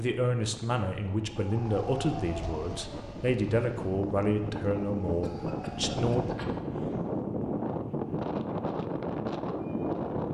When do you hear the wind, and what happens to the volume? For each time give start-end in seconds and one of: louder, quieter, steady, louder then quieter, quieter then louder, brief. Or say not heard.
0.0-10.2 louder.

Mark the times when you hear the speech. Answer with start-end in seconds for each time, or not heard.
0.0-6.2.